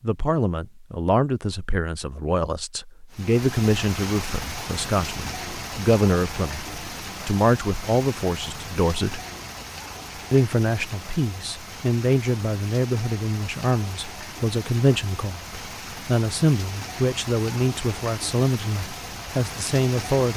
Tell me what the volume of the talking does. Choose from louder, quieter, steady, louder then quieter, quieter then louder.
steady.